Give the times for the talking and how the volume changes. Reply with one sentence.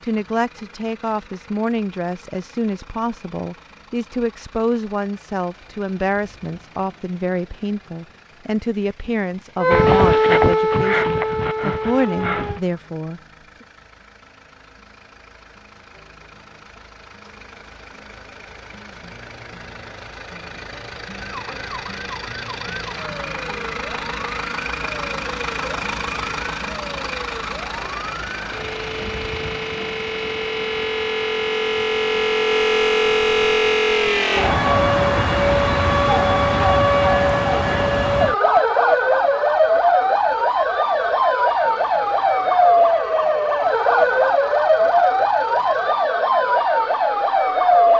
The talking can be heard from 0.0 to 13.2 s, at a steady volume.